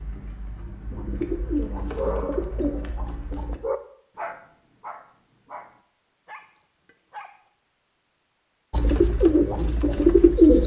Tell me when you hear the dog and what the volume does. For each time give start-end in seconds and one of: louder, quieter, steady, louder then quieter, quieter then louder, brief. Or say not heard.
1.9-7.4 louder then quieter.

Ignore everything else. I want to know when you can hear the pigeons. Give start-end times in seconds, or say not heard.
0.0-3.6, 8.7-10.6.